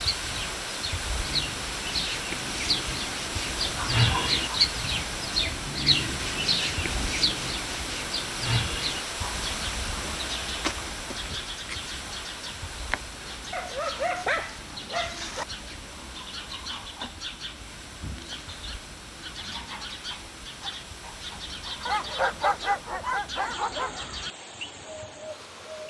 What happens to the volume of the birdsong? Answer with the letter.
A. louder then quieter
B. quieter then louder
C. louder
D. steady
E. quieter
E.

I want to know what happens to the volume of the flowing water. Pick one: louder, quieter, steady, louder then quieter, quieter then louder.
quieter.